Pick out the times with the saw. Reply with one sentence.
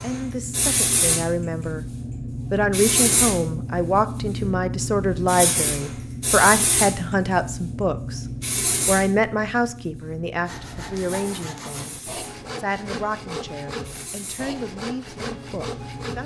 The saw can be heard from 10.4 to 16.2 s.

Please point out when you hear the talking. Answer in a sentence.
The talking can be heard from 0.0 to 1.9 s, from 2.5 to 8.2 s, from 8.8 to 11.9 s and from 12.6 to 16.2 s.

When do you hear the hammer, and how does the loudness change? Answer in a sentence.
You can't hear the hammer here.